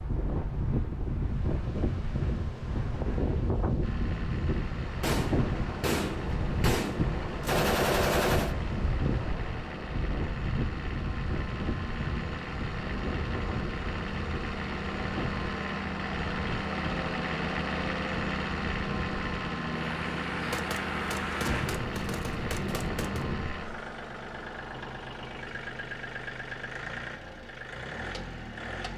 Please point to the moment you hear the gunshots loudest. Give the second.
8 s.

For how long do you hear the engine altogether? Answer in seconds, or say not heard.
25 s.